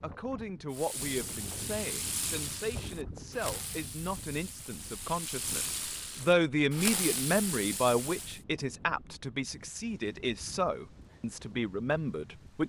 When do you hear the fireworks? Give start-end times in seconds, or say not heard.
0.7-8.4.